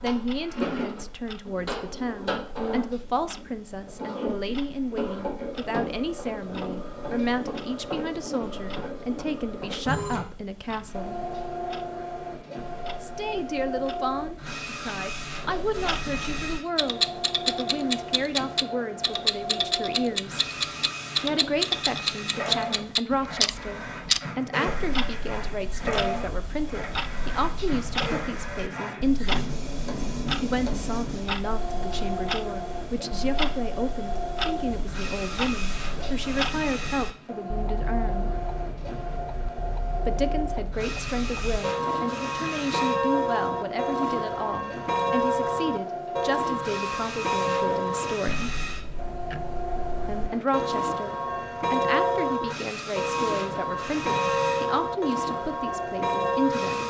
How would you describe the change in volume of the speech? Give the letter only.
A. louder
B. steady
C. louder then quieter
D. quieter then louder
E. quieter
B.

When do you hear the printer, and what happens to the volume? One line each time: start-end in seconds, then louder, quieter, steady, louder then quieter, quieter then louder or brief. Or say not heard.
0.0-56.8 steady.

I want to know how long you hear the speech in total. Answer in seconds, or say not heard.
50 s.